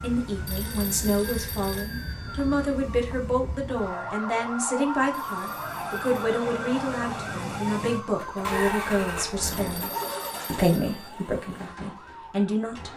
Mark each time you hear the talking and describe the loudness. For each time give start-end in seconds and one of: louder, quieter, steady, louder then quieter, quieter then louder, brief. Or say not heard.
0.0-9.9 steady
10.5-12.9 brief.